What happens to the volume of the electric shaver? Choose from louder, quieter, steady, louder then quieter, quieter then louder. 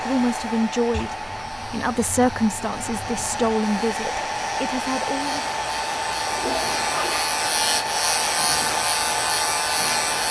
louder.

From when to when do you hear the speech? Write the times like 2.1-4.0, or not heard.
0.0-5.5.